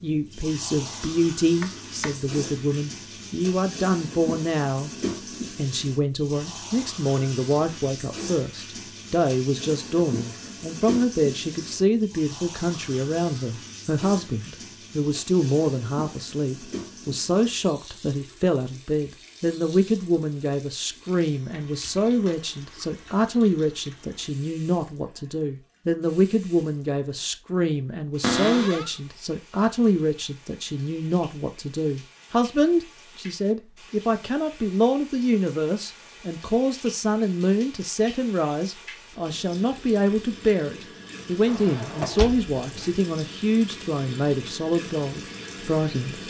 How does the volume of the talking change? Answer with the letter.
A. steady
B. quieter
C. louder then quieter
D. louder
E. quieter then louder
A.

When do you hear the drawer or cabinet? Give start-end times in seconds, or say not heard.
1.6-2.1, 28.2-28.9, 41.5-43.0.